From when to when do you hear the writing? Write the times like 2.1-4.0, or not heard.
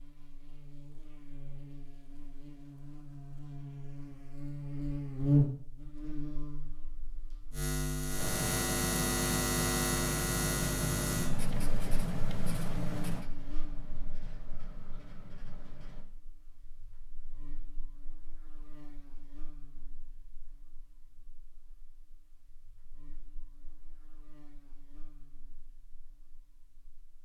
8.2-16.1.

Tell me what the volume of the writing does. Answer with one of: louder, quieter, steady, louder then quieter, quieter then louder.
quieter.